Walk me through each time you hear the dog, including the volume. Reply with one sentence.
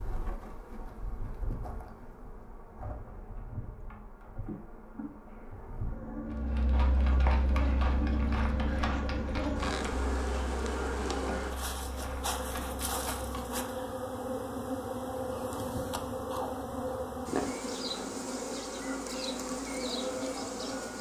The dog can't be heard in this clip.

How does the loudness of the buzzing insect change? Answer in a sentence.
The loudness of the buzzing insect goes up.